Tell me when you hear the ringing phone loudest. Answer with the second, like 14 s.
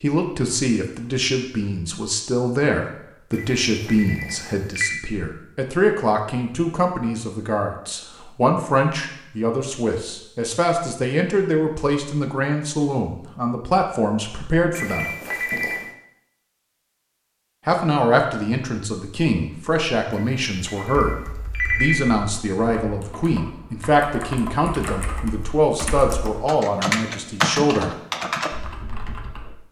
22 s.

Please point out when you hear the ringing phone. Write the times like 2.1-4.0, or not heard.
3.3-5.0, 14.7-15.8, 20.1-22.0.